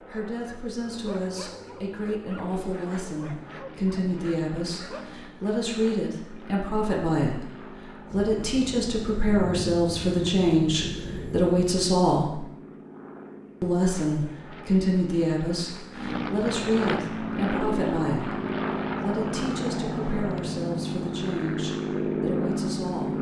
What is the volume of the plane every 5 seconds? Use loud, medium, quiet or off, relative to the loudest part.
quiet, quiet, quiet, loud, loud.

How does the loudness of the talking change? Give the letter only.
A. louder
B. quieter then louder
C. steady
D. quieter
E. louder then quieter
E.